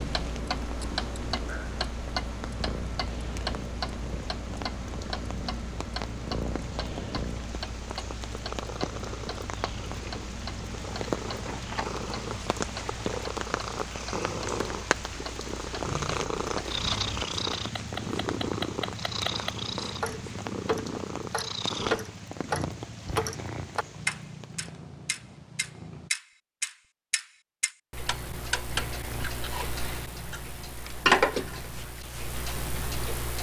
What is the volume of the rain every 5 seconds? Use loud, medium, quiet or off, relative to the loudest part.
medium, medium, loud, loud, medium, off, off.